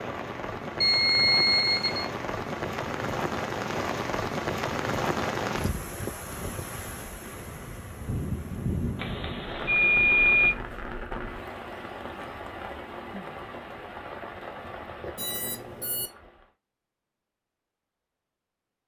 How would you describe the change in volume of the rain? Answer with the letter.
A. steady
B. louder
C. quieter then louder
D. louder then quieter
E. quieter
E.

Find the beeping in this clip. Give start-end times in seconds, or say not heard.
0.8-2.1, 8.9-10.5, 15.2-16.1.